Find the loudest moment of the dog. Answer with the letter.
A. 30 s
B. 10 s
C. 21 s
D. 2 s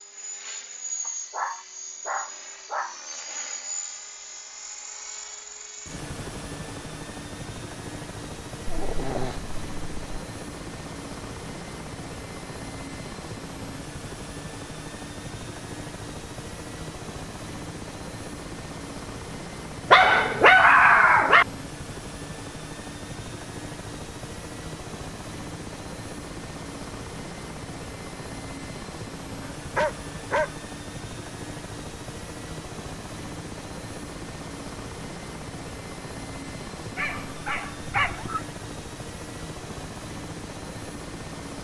C.